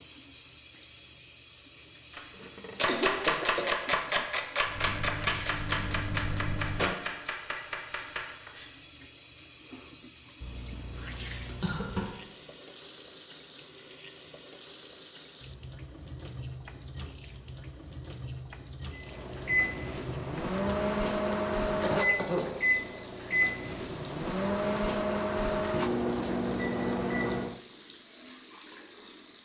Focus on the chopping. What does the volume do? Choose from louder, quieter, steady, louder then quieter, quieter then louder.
quieter.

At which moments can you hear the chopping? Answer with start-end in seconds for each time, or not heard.
2.1-8.7.